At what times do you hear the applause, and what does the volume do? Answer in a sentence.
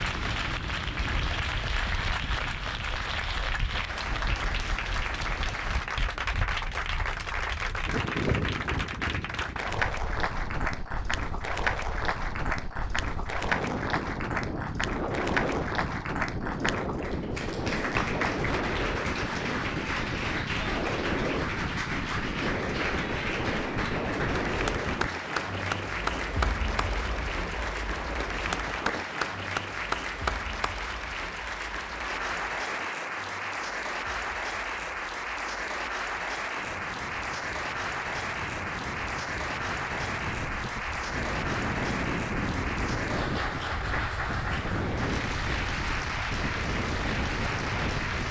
The applause can be heard from 0.0 to 48.2 s, at a steady volume.